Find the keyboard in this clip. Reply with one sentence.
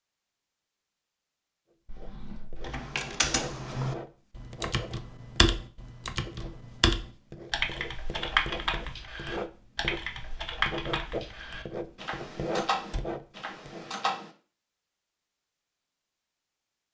The keyboard can be heard from 2.6 to 14.3 s.